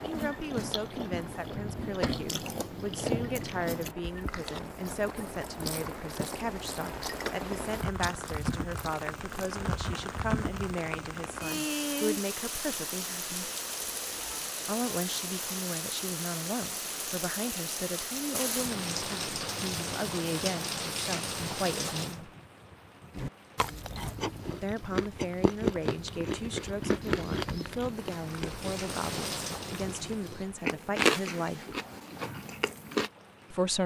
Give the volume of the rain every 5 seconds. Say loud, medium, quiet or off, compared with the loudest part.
medium, loud, loud, loud, loud, medium, quiet.